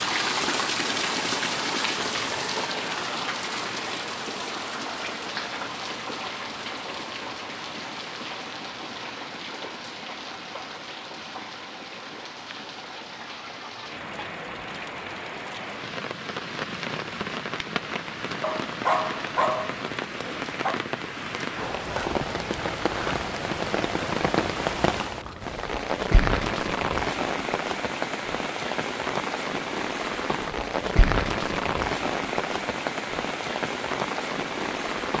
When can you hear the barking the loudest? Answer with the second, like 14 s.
19 s.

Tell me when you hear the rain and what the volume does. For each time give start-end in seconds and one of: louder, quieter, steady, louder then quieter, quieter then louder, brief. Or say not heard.
0.0-35.1 quieter then louder.